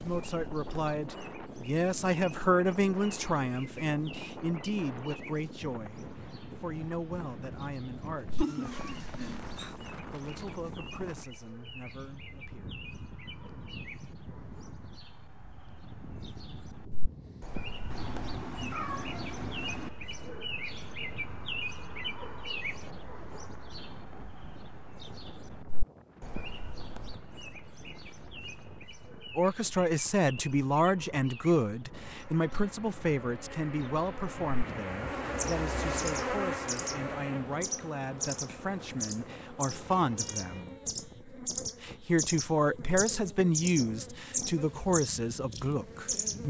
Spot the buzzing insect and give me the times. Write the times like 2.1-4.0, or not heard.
31.9-46.4.